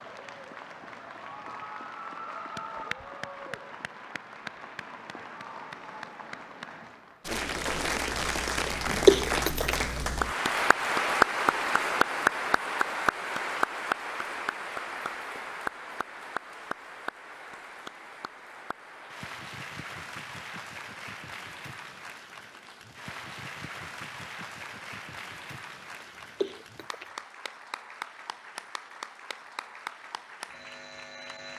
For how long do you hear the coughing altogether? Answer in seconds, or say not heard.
2 s.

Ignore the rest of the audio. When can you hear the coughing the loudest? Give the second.
9 s.